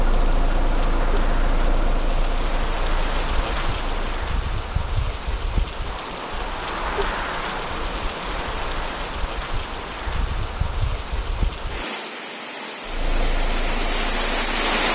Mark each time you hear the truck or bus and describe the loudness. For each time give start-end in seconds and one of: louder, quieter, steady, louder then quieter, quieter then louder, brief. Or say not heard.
0.0-4.3 quieter
12.8-14.8 brief.